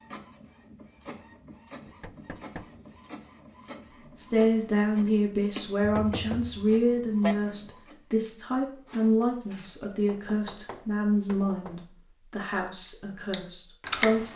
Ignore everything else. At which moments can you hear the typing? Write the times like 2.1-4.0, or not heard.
12.5-14.3.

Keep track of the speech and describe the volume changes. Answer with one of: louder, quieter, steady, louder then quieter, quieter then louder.
quieter.